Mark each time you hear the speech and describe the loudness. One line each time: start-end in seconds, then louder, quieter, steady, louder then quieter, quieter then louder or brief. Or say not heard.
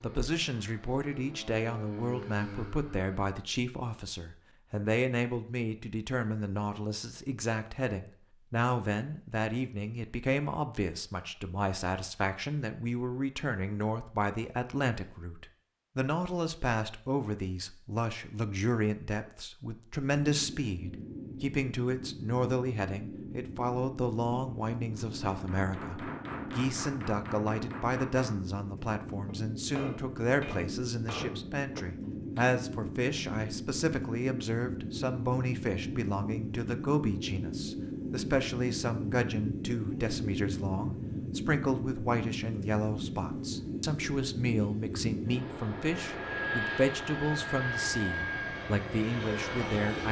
0.0-50.0 steady.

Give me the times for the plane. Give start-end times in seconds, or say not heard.
0.0-3.1, 20.1-50.0.